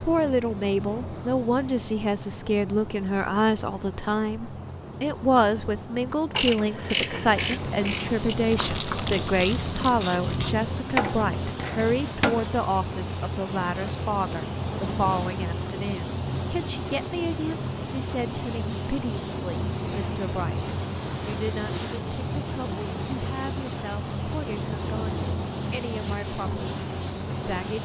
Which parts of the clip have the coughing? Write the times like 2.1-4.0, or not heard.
not heard.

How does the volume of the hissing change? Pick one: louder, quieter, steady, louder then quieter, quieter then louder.
louder.